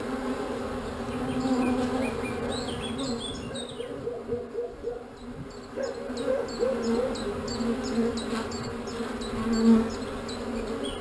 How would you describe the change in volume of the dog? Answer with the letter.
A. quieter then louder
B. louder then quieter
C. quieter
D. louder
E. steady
D.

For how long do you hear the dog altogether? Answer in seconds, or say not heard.
7 s.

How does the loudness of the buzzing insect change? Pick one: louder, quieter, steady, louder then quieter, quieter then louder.
quieter then louder.